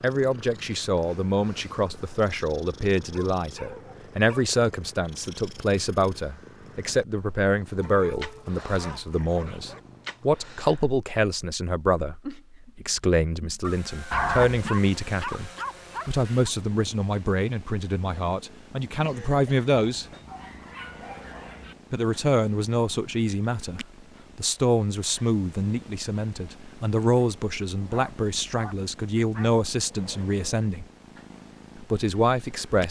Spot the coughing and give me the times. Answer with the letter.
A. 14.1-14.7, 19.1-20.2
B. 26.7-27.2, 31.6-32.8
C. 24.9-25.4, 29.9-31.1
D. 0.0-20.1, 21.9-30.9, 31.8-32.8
A.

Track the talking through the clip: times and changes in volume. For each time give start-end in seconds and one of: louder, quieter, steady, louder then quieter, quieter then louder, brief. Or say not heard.
0.0-20.1 steady
21.9-30.9 steady
31.8-32.8 brief.